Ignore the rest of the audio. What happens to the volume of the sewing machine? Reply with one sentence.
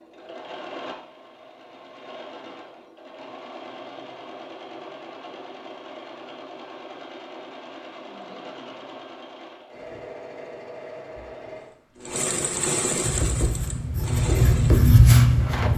The volume of the sewing machine goes up.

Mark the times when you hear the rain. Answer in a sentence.
The rain can't be heard in this clip.